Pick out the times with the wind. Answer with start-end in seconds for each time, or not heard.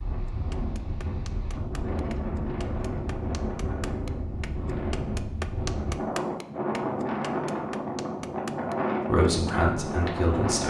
0.0-10.6.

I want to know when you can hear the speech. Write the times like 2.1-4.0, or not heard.
9.1-10.6.